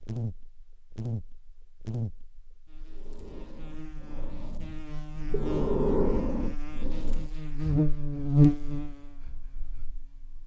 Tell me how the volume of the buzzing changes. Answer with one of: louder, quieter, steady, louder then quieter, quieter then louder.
quieter then louder.